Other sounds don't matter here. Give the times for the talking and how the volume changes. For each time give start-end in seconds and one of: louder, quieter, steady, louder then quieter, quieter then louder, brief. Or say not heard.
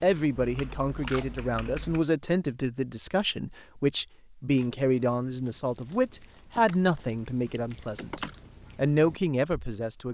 0.0-10.0 steady.